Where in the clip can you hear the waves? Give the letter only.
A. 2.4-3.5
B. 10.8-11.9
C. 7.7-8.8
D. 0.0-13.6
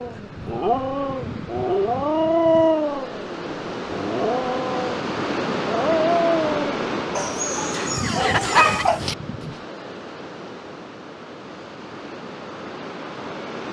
D.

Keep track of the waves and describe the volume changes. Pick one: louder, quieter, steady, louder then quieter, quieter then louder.
louder then quieter.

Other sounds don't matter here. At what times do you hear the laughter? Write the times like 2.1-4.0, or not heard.
7.7-8.8.